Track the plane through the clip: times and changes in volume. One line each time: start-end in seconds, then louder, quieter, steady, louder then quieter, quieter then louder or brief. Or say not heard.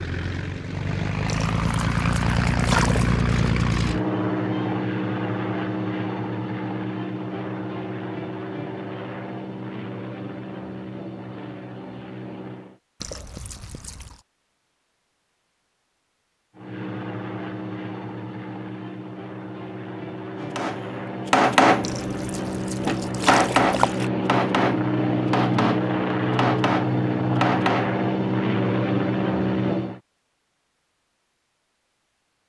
0.0-12.8 quieter
16.6-30.0 louder.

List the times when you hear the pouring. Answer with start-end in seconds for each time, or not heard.
1.2-3.2, 13.0-14.2, 21.8-24.1.